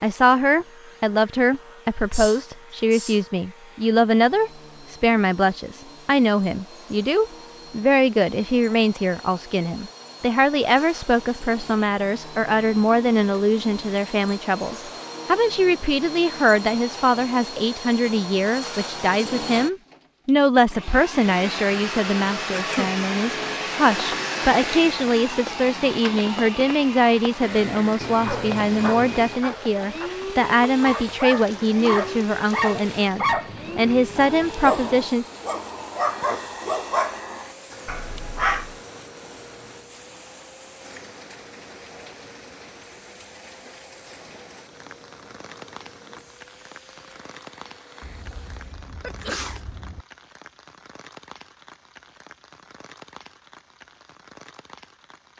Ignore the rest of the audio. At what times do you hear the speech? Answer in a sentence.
The speech can be heard from 0.0 to 35.2 s.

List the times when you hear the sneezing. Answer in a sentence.
You can hear the sneezing from 2.1 to 3.2 s, from 22.5 to 22.9 s and from 48.0 to 50.0 s.